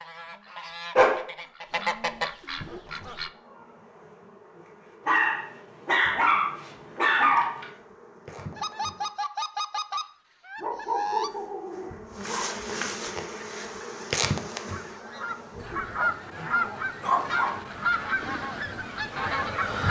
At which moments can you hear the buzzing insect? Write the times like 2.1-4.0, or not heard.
2.5-9.1, 11.0-19.8.